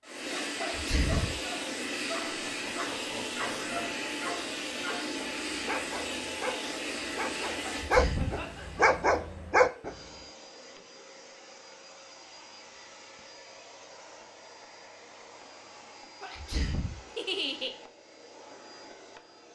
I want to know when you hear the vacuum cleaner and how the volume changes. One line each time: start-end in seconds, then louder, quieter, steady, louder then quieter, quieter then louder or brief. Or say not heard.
0.0-19.5 quieter.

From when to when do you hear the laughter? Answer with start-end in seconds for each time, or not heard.
2.2-3.7, 8.2-8.9, 17.1-17.8.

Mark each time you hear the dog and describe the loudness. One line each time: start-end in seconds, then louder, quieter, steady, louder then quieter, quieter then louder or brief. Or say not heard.
0.1-9.9 louder.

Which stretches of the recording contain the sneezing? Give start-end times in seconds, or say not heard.
0.6-1.4, 7.6-8.4, 16.2-17.0.